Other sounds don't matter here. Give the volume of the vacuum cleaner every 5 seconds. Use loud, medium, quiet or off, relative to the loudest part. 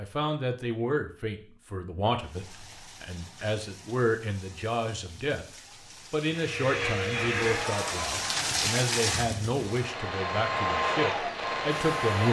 off, loud, loud.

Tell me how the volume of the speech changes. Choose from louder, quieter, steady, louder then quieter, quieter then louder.
steady.